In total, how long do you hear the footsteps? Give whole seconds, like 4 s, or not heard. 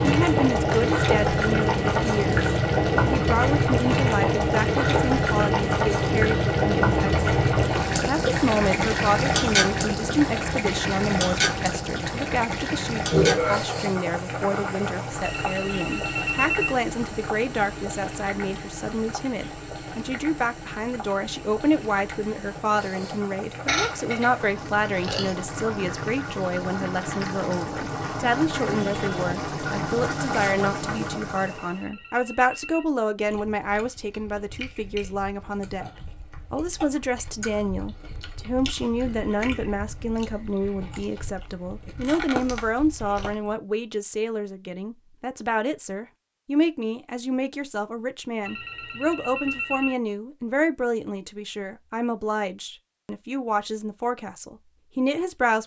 not heard.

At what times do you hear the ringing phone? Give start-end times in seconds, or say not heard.
15.2-16.8, 31.4-32.9, 48.5-50.0.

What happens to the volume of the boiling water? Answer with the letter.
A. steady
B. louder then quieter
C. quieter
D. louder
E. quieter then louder
E.